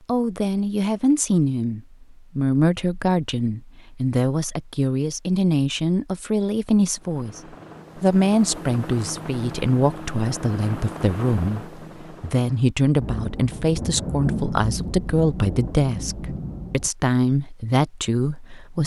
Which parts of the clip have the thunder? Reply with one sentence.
You can hear the thunder from 13.0 to 16.9 s.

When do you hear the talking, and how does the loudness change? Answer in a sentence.
The talking can be heard from 0.1 to 18.8 s, at a steady volume.